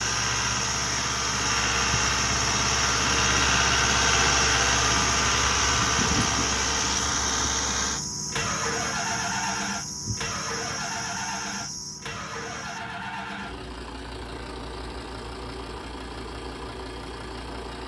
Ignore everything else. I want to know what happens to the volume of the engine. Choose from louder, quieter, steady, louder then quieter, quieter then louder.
quieter.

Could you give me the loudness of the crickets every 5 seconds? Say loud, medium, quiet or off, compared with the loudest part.
loud, loud, medium, off.